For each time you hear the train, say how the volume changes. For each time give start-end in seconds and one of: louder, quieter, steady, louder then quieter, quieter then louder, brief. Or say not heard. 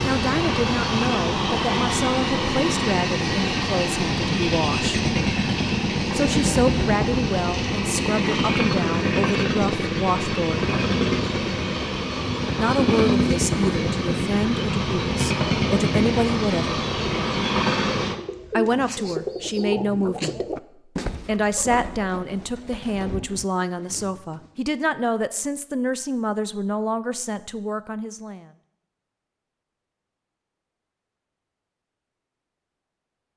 0.0-18.2 steady.